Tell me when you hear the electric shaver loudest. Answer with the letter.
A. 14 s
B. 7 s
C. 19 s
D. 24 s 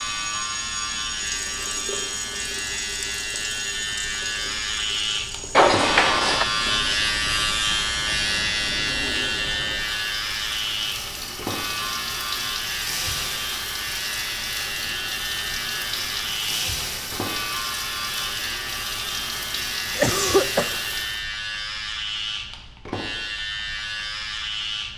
B.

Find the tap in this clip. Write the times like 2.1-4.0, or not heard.
0.0-21.2.